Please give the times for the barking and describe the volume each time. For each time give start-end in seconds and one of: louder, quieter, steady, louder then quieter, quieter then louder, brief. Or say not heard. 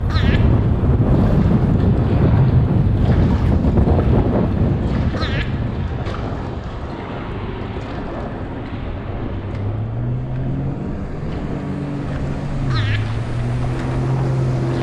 not heard.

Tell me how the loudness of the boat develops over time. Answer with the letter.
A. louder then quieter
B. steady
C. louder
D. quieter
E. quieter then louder
C.